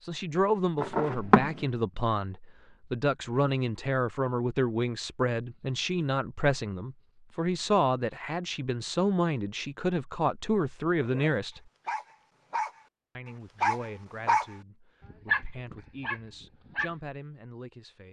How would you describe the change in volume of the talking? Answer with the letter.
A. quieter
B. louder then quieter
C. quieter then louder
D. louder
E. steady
A.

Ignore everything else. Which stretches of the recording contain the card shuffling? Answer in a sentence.
You can hear the card shuffling from 0.8 to 1.6 s.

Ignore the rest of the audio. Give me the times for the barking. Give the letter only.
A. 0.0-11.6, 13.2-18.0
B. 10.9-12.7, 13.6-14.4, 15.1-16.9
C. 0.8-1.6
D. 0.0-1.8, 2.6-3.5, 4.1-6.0
B.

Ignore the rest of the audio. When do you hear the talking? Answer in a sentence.
The talking can be heard from 0.0 to 11.6 s and from 13.2 to 18.0 s.